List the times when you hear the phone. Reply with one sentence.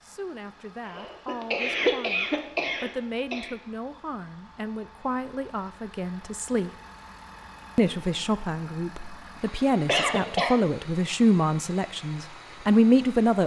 You can't hear the phone here.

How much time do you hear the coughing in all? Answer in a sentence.
The coughing can be heard for 4 seconds in total.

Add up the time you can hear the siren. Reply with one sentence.
You can't hear the siren here.